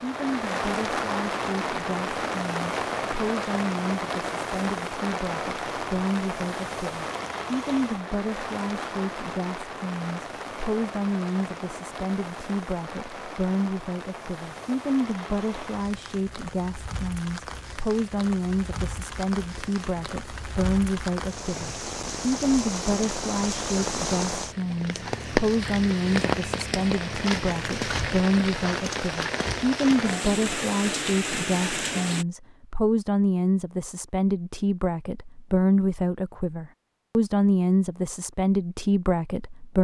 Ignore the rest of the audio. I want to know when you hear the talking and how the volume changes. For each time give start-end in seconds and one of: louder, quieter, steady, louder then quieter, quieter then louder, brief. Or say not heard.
0.0-39.7 louder.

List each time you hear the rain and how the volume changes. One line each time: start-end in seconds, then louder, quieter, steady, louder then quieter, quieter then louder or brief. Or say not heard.
0.0-32.2 quieter then louder.